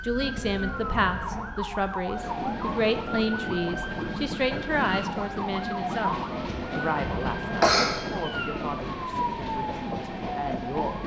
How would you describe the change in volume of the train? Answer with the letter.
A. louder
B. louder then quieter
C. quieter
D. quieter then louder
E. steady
E.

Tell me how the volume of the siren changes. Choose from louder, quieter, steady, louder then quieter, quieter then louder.
steady.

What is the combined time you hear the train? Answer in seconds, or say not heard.
9 s.